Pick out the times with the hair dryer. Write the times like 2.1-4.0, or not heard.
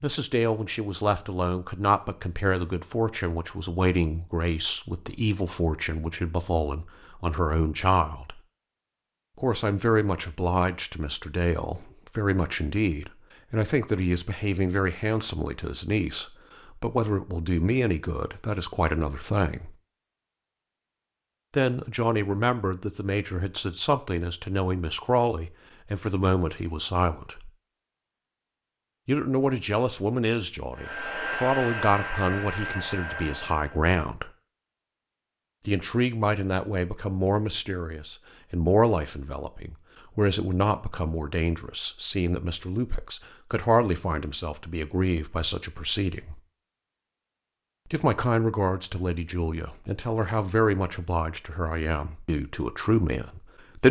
30.8-33.8.